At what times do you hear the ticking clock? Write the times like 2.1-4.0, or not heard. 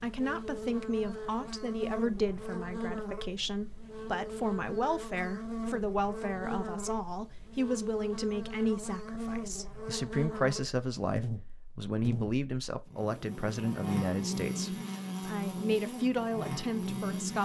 not heard.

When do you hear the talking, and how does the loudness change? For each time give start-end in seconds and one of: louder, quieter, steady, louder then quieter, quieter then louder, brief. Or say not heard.
0.0-17.4 steady.